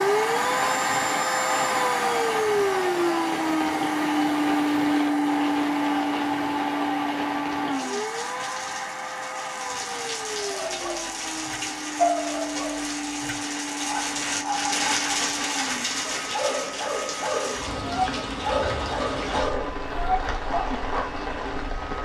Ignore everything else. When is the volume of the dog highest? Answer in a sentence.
The volume of the dog peaks at 12 seconds.